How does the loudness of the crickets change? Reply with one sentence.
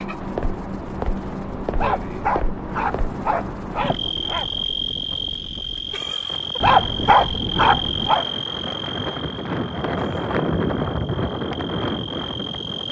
The volume of the crickets goes down.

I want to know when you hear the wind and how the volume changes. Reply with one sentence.
You can hear the wind from 0.2 to 12.8 s, getting louder.